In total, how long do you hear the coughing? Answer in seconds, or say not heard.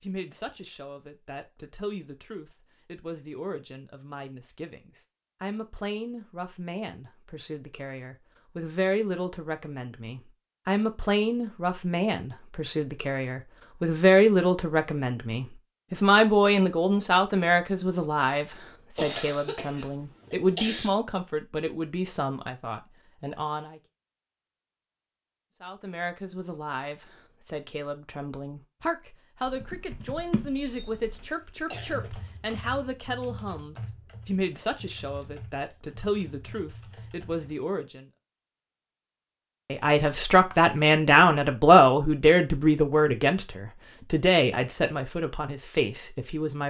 3 s.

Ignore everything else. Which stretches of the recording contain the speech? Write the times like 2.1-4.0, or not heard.
0.0-23.8, 25.6-38.0, 39.7-46.6.